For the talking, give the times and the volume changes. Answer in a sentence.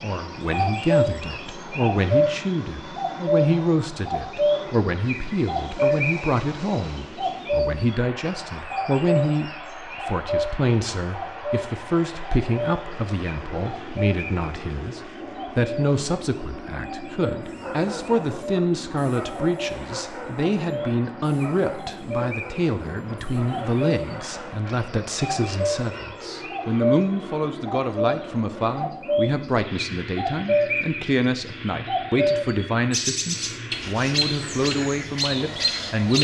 The talking can be heard from 0.0 to 36.1 s, at a steady volume.